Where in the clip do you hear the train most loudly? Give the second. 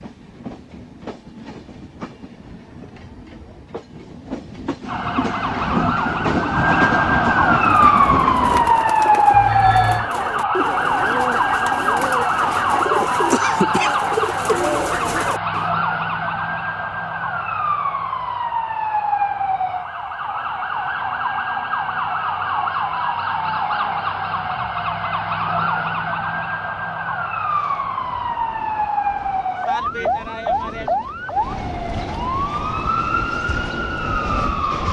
7 s.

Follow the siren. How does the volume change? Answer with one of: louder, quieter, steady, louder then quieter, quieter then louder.
quieter.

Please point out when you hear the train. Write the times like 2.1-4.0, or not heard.
0.0-8.8, 27.4-34.8.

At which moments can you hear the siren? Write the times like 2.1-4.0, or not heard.
4.8-34.8.